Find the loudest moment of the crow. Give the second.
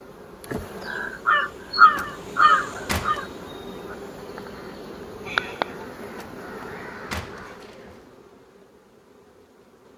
2 s.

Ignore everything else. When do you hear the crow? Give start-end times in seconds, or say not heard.
0.8-7.2.